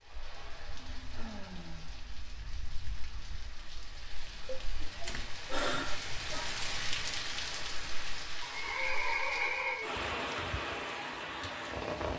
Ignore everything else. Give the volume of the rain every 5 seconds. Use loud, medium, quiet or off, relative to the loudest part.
quiet, loud, loud.